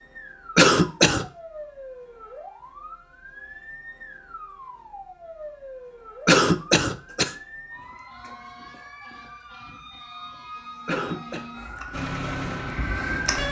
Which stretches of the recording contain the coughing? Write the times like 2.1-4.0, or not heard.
0.6-1.2, 6.2-7.3, 10.8-11.4.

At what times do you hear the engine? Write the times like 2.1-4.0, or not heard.
11.9-13.4.